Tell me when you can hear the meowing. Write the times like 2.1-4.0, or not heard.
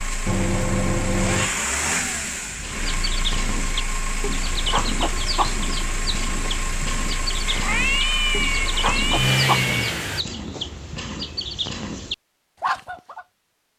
0.2-1.5, 7.5-10.0.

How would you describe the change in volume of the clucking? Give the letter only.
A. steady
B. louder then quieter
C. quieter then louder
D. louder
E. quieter
A.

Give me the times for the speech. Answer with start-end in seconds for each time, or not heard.
not heard.